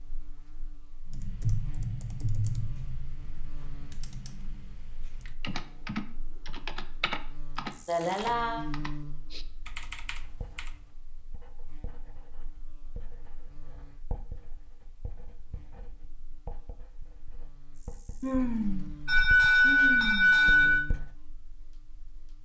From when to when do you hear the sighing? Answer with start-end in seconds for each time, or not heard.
7.8-8.7, 18.2-20.9.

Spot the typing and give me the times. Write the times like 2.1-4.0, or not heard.
1.1-10.9.